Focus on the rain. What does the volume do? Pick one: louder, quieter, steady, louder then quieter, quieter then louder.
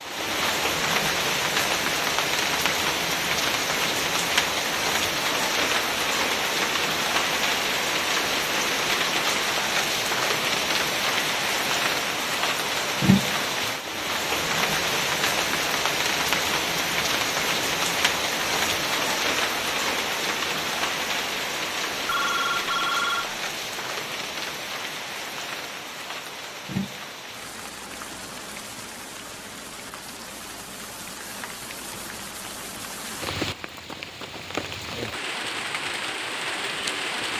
quieter.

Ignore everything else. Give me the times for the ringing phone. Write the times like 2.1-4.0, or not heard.
22.1-23.3.